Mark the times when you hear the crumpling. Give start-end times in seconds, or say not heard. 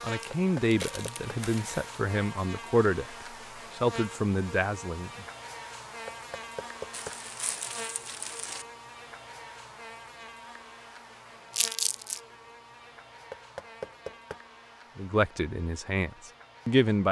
0.2-1.9, 6.9-8.7, 11.6-12.2.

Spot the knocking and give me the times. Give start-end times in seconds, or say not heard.
0.3-1.4, 6.0-7.2, 13.3-14.4.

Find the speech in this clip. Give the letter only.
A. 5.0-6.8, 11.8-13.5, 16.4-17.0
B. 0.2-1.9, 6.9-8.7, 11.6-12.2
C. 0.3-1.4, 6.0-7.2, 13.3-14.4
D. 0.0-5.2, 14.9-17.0
D.